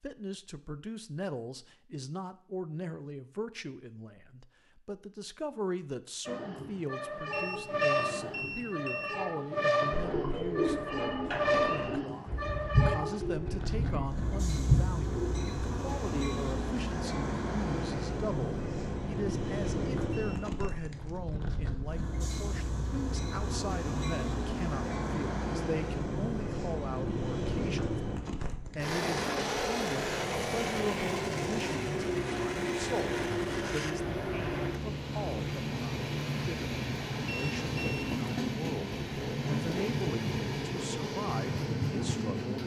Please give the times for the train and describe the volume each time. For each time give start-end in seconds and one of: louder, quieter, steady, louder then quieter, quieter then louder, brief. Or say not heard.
6.2-42.6 steady.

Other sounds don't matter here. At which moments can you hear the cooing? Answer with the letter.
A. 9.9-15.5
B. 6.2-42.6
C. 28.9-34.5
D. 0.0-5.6
A.